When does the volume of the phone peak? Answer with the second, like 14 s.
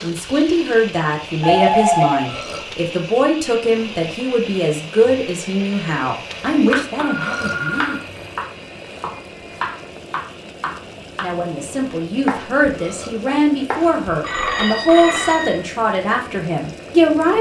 2 s.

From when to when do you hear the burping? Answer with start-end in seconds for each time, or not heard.
2.2-2.8, 7.2-7.7, 12.7-13.2.